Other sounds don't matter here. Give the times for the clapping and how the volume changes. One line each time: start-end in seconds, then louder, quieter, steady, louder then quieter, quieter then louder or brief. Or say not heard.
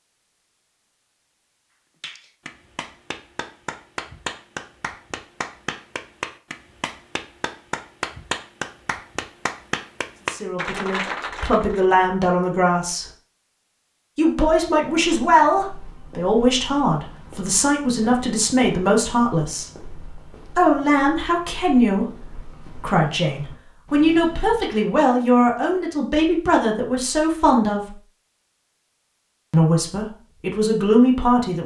2.0-11.8 louder.